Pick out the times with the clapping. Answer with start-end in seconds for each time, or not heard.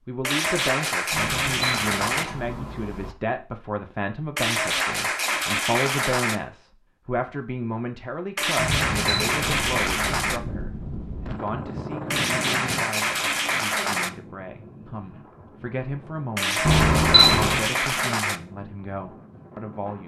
0.2-2.2, 4.3-6.4, 8.3-10.4, 12.1-14.1, 16.4-18.4.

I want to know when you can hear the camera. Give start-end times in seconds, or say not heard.
1.1-3.1, 8.6-9.7, 16.6-17.7.